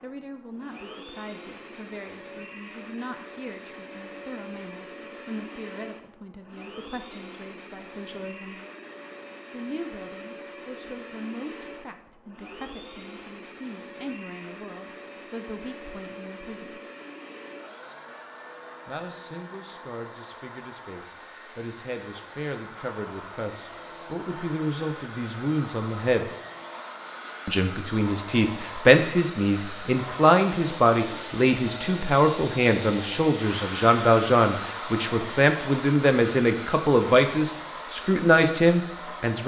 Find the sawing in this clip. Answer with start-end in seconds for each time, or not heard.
not heard.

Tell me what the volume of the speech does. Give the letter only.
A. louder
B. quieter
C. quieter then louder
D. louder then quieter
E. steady
A.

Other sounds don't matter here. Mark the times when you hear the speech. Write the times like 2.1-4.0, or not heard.
0.0-8.6, 9.5-16.8, 18.9-26.3, 27.4-39.4.